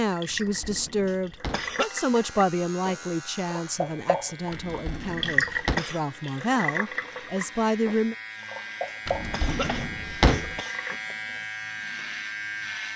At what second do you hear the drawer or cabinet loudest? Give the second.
10 s.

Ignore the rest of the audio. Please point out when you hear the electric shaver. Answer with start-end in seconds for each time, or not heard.
1.8-12.9.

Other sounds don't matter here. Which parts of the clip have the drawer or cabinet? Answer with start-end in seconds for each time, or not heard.
0.2-1.8, 4.5-5.8, 9.1-10.6.